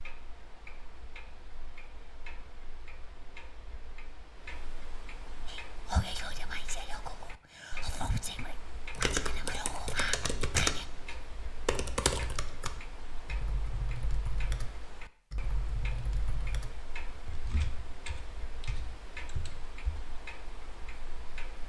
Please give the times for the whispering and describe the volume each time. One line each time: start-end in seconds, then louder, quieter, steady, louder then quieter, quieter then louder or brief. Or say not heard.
5.5-10.8 quieter then louder.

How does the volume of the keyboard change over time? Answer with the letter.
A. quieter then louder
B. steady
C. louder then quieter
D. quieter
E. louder
D.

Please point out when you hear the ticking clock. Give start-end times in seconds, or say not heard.
0.0-21.6.